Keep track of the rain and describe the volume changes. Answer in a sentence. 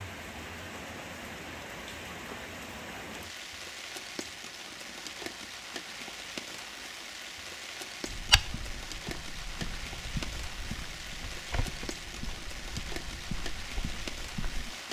The loudness of the rain stays about the same.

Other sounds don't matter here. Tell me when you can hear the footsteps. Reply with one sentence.
You can hear the footsteps from 8.1 to 14.8 s.